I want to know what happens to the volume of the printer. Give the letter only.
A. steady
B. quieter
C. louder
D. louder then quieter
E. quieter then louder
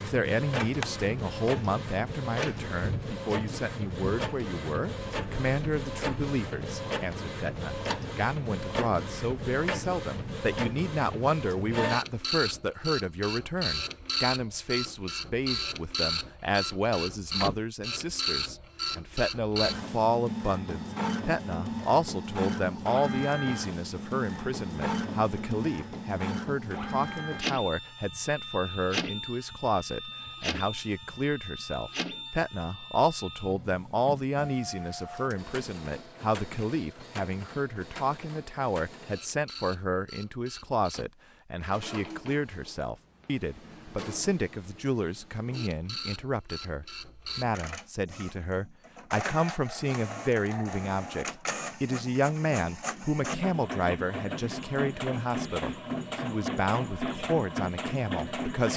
E.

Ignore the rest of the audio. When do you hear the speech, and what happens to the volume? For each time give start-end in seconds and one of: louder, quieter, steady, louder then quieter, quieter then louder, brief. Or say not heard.
0.0-58.7 steady.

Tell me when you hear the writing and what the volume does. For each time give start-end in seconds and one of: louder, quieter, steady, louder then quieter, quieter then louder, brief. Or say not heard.
not heard.